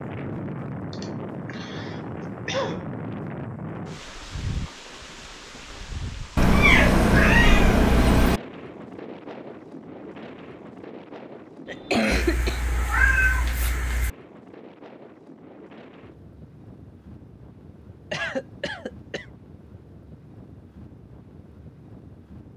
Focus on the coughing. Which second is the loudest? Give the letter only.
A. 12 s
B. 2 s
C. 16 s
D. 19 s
A.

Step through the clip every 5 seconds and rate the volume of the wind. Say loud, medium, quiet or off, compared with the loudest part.
loud, medium, medium, quiet, quiet.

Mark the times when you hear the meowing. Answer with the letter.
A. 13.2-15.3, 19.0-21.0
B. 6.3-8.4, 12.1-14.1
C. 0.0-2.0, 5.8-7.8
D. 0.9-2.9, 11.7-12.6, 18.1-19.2
B.